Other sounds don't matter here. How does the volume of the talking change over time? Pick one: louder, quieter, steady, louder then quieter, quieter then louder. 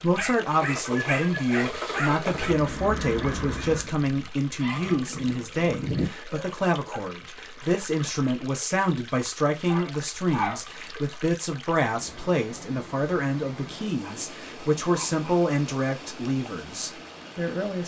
steady.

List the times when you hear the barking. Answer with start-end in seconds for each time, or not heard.
0.1-2.6, 4.8-7.0, 9.7-10.6, 14.0-15.4.